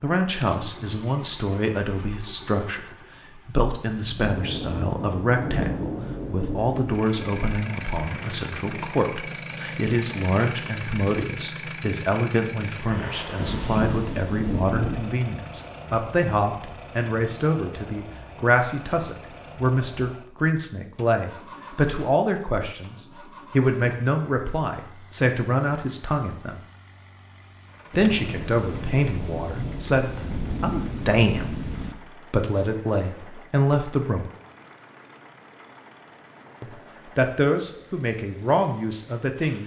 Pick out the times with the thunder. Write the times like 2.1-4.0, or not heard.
4.2-7.5, 13.3-15.1, 27.9-31.9.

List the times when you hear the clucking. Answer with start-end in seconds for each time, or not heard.
not heard.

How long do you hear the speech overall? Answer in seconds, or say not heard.
36 s.